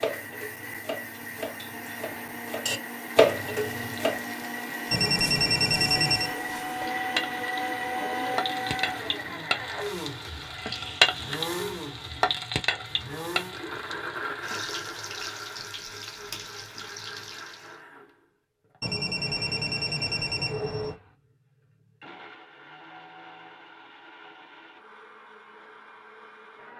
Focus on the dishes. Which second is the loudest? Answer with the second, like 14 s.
3 s.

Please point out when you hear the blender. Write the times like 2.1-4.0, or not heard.
0.0-26.7.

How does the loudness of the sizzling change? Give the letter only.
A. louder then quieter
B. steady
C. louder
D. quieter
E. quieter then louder
A.